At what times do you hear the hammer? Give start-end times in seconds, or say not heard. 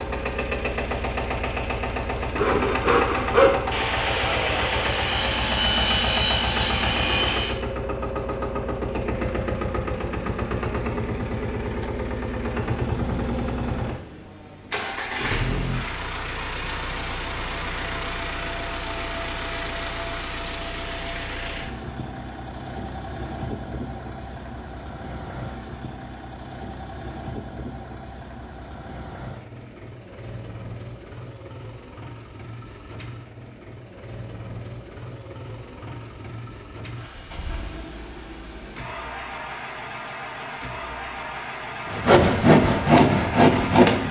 not heard.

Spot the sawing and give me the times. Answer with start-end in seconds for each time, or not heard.
2.4-7.6, 41.9-44.0.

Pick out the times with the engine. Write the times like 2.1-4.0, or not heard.
0.0-44.0.